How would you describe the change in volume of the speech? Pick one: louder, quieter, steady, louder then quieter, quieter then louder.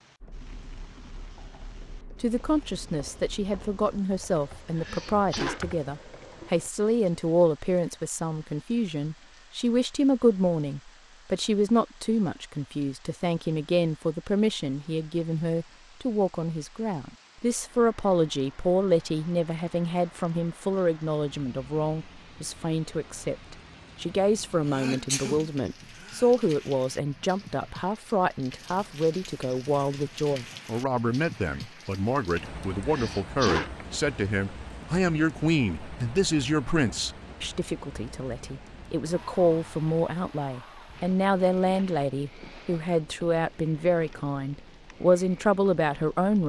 steady.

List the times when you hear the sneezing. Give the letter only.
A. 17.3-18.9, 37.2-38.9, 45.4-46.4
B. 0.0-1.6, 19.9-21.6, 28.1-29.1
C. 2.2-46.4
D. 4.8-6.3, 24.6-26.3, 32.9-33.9
D.